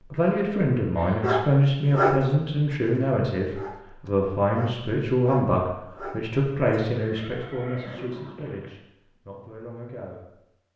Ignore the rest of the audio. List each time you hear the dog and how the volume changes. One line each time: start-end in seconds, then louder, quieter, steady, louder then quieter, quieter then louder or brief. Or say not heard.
1.2-6.8 quieter then louder.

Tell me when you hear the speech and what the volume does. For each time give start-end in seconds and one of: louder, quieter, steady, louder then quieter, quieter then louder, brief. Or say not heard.
0.0-10.3 quieter.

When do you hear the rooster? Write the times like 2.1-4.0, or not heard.
not heard.